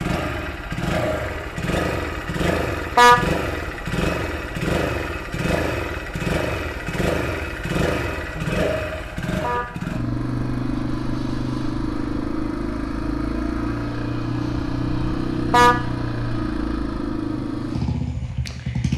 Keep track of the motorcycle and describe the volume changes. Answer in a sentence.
The volume of the motorcycle stays about the same.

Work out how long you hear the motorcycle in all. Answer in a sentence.
The motorcycle can be heard for 19 seconds in total.